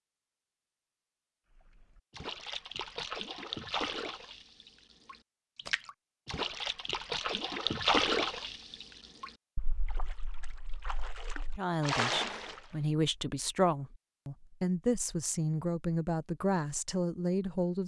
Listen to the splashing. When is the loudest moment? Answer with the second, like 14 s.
8 s.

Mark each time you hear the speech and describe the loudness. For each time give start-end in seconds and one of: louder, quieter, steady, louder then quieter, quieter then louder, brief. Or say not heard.
11.6-17.8 steady.